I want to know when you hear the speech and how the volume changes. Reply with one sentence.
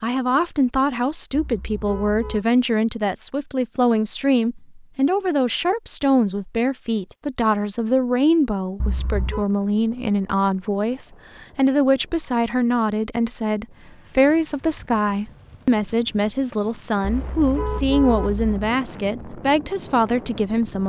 The speech can be heard from 0.0 to 20.8 s, at a steady volume.